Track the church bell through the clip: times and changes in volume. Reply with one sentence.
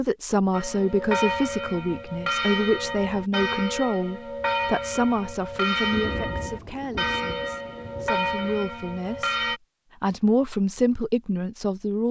You can hear the church bell from 0.5 to 9.6 s, at a steady volume.